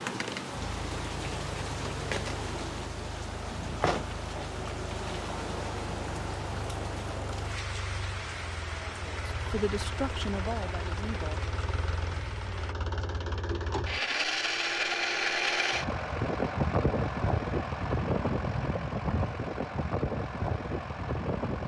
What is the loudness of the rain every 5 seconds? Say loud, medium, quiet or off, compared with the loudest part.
loud, loud, medium, off, off.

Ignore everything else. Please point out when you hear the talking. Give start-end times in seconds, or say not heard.
9.0-11.4.